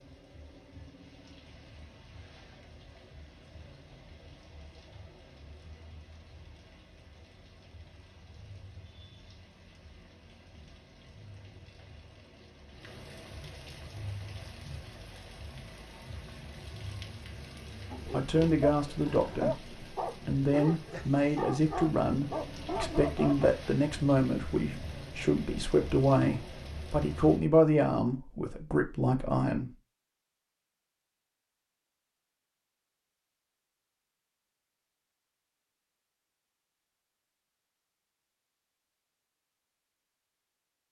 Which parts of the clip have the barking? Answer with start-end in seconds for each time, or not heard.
17.9-23.5.